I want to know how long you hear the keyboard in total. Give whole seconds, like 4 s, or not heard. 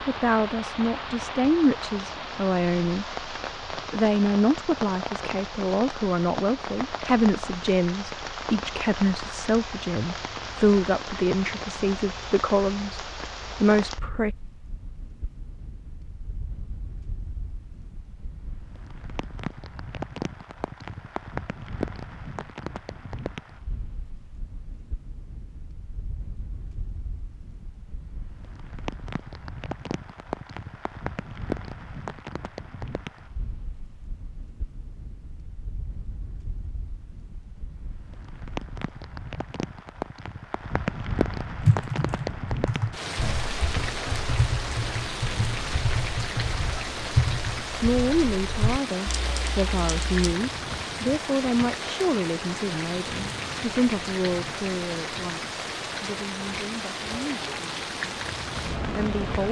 9 s.